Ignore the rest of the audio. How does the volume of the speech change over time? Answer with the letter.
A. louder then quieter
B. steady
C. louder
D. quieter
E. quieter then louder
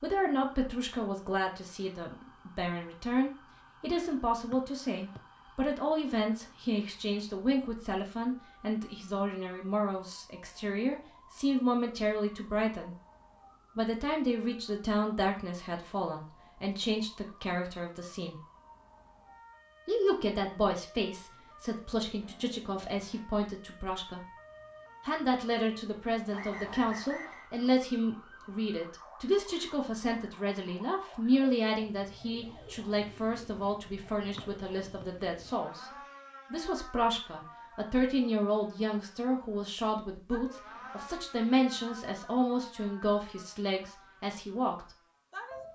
B.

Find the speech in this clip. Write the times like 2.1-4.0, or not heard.
0.0-12.9, 13.8-18.4, 19.9-24.3, 25.1-35.9, 36.5-44.9.